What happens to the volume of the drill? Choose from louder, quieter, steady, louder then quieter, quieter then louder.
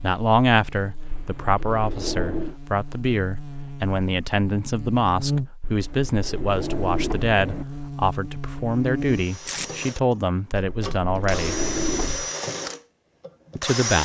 louder then quieter.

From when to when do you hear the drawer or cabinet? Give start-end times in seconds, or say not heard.
1.1-2.5, 5.6-7.7, 10.5-12.3.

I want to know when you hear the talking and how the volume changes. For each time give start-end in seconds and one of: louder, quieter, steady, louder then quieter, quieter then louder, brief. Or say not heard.
0.0-11.6 steady
13.6-14.0 brief.